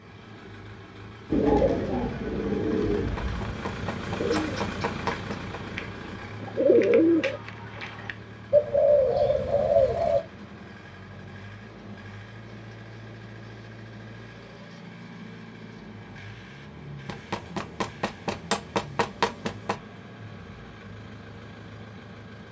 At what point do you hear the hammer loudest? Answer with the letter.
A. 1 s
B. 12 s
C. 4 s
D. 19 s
D.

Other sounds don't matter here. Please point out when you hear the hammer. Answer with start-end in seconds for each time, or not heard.
3.0-5.6, 17.1-19.8.